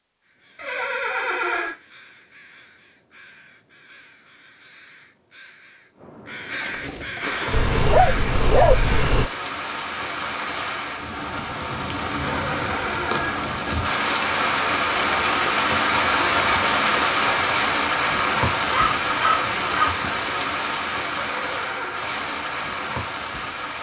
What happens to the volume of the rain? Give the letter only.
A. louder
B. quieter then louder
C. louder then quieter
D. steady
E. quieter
C.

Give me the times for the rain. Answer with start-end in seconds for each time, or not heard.
7.2-23.7.